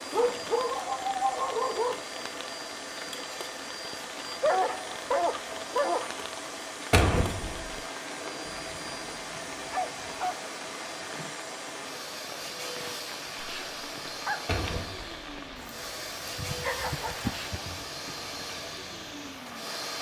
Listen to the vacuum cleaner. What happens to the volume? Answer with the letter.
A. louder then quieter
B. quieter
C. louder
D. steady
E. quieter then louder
D.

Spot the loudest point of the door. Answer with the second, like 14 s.
7 s.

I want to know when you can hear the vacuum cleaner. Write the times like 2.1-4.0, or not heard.
0.0-19.9.